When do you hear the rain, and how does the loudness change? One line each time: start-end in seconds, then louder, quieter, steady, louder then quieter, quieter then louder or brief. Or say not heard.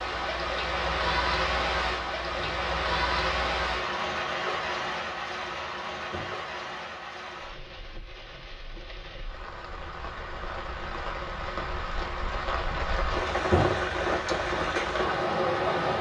0.0-15.9 quieter then louder.